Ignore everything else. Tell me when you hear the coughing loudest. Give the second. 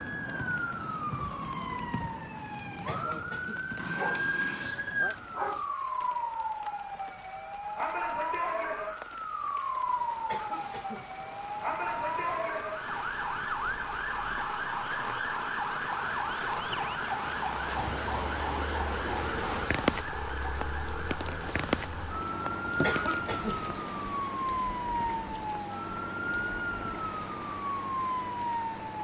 23 s.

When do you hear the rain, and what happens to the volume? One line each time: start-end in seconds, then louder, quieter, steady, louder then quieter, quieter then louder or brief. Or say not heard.
0.0-29.0 louder then quieter.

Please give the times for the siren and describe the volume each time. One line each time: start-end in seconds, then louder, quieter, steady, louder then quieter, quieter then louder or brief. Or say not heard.
0.0-29.0 steady.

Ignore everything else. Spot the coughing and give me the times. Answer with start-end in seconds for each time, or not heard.
2.9-3.6, 10.2-11.1, 22.8-23.6.